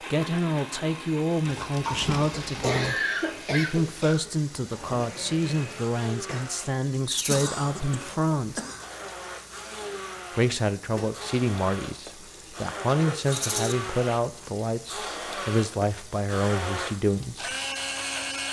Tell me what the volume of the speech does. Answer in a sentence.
The loudness of the speech stays about the same.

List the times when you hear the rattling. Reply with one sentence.
You can hear the rattling from 1.4 to 2.9 s, from 7.0 to 7.5 s and from 13.3 to 13.8 s.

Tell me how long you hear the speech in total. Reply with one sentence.
You can hear the speech for 16 seconds altogether.